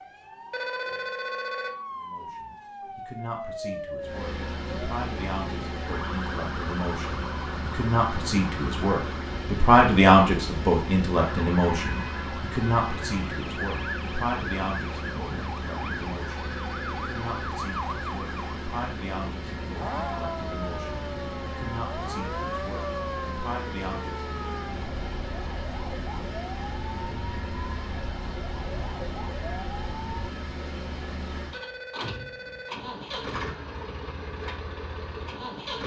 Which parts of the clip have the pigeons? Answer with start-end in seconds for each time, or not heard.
not heard.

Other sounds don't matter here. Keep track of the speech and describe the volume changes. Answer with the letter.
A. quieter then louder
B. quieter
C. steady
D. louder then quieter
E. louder
D.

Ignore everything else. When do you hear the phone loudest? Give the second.
1 s.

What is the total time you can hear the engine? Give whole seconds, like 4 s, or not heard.
32 s.